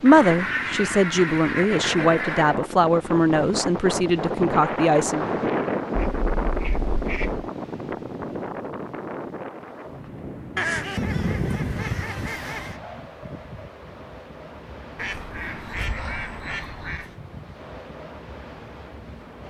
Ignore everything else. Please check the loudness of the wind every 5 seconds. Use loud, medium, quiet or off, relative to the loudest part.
loud, loud, medium, quiet.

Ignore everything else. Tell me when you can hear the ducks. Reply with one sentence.
You can hear the ducks from 0.1 to 2.5 s, from 6.0 to 7.5 s, from 10.6 to 12.8 s and from 14.9 to 17.1 s.